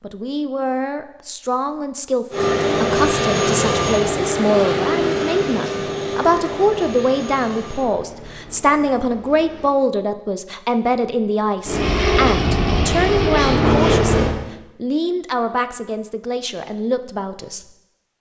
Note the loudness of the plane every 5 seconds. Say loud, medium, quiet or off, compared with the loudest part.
loud, medium, loud, off.